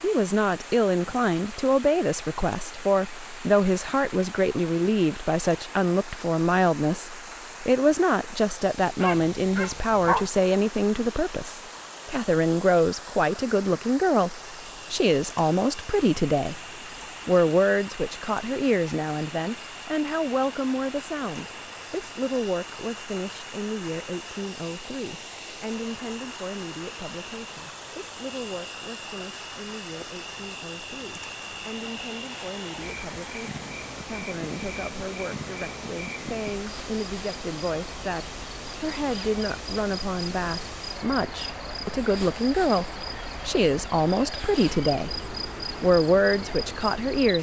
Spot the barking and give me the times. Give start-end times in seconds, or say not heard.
9.0-10.3.